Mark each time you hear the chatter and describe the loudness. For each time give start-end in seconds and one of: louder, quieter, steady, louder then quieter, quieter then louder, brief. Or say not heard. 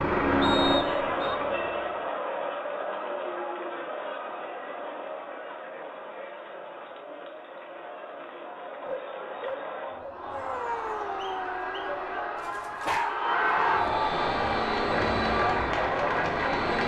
0.2-16.8 quieter then louder.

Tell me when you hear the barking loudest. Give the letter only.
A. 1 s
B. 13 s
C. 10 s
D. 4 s
B.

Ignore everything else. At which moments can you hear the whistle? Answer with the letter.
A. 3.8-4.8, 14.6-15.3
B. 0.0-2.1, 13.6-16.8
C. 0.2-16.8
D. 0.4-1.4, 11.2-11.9
D.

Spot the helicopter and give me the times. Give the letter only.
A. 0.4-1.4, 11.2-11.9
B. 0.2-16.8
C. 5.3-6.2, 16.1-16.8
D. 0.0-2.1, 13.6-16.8
D.